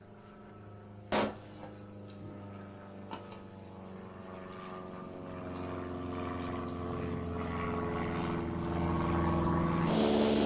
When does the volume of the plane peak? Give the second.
10 s.